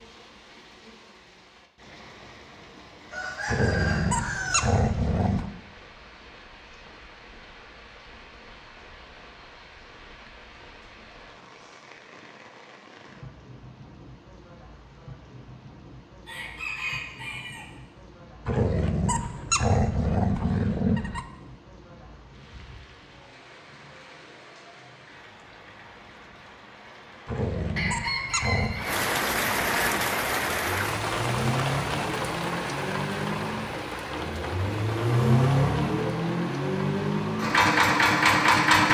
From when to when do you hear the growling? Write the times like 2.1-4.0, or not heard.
3.5-5.5, 18.4-21.2, 27.2-28.9.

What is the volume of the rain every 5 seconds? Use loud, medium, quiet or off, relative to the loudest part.
quiet, quiet, quiet, quiet, quiet, loud, loud, medium.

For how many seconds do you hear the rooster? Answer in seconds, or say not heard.
4 s.